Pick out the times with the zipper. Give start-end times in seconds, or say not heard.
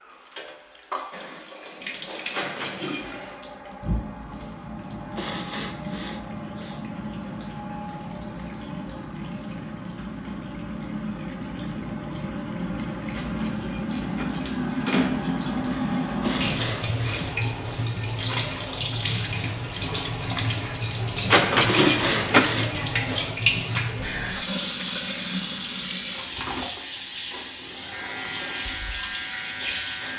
not heard.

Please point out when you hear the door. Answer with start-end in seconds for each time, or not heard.
2.3-3.4, 13.1-15.1, 21.3-22.4.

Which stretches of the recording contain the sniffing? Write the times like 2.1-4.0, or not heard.
5.2-6.8, 16.2-17.9, 21.6-23.3.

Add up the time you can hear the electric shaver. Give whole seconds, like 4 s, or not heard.
2 s.